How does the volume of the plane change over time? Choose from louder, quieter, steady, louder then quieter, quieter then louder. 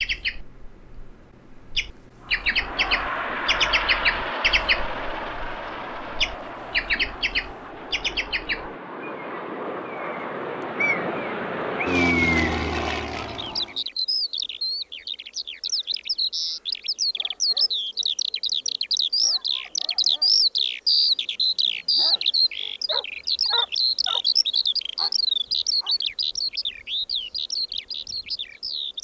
quieter then louder.